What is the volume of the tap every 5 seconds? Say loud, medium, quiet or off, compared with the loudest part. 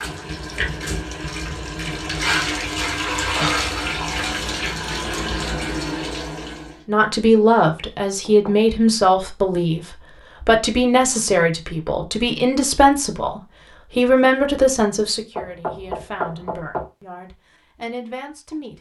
loud, loud, off, off.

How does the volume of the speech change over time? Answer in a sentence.
The loudness of the speech goes down.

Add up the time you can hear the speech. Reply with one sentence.
The speech can be heard for 12 seconds in total.